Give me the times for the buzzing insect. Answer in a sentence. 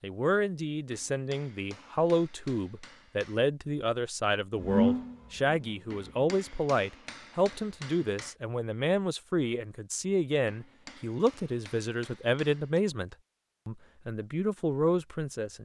You can't hear the buzzing insect here.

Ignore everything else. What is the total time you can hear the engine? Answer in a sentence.
The engine can be heard for 2 seconds in total.